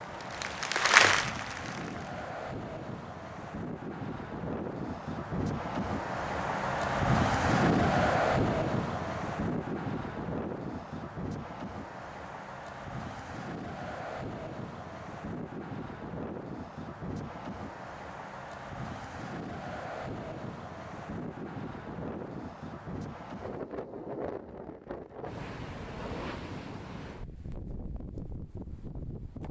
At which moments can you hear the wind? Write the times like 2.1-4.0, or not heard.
0.0-29.4.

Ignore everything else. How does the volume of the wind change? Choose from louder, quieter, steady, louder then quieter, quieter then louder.
louder then quieter.